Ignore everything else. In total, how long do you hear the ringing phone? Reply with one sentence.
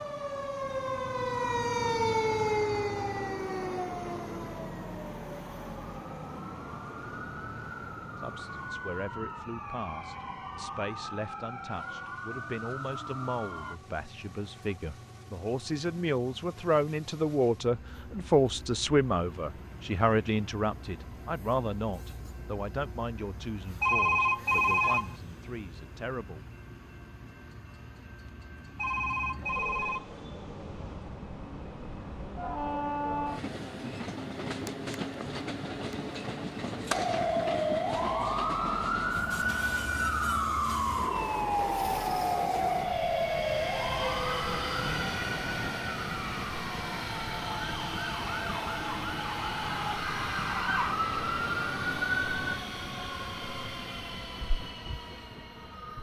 You can hear the ringing phone for 3 seconds altogether.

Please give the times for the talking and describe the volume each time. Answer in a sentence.
The talking can be heard from 8.2 to 26.4 s, getting louder then quieter.